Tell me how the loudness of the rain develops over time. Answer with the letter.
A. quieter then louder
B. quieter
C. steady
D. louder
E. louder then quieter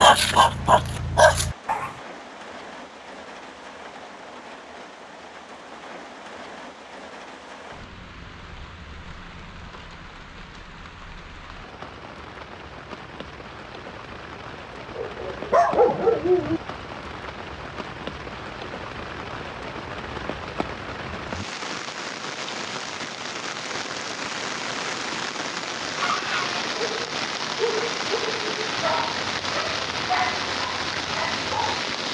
D.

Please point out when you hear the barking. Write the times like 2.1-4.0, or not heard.
0.0-1.9, 14.9-16.6, 26.0-31.8.